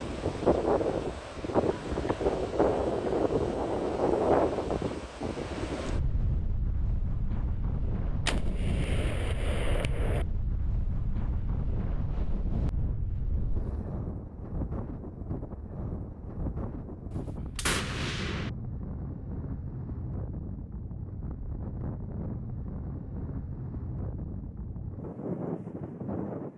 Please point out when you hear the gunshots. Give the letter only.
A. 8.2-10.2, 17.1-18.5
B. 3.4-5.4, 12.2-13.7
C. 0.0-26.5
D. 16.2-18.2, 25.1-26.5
A.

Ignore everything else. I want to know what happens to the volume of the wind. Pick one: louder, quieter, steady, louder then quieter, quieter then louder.
quieter.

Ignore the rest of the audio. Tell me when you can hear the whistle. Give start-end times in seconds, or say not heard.
not heard.